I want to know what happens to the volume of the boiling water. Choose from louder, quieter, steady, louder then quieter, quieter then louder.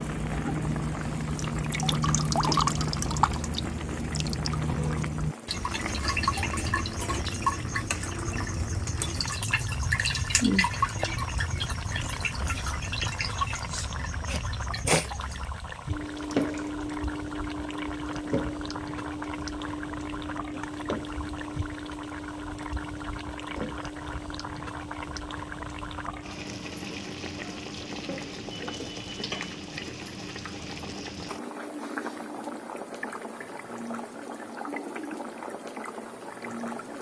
steady.